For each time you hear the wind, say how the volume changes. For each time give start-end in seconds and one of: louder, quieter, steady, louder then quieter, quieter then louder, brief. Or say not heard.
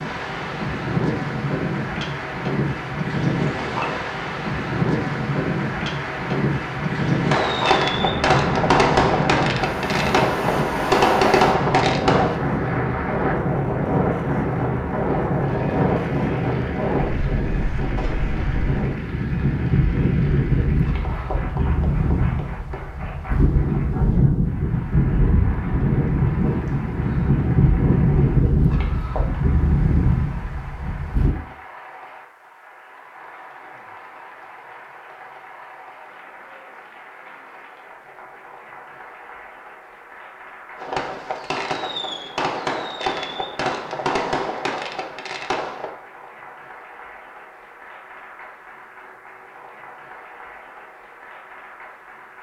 0.0-31.3 steady.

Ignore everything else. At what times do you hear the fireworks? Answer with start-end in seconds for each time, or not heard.
7.3-12.4, 40.8-45.9.